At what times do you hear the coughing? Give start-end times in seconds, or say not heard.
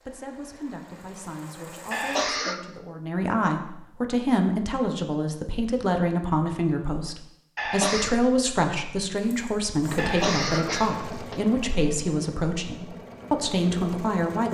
1.9-2.6, 7.5-8.2, 9.9-11.4.